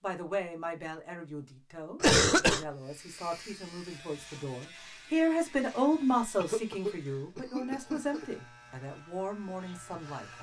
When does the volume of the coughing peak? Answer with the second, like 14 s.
2 s.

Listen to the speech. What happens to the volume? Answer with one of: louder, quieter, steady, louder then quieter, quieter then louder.
louder then quieter.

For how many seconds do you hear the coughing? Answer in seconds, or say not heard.
3 s.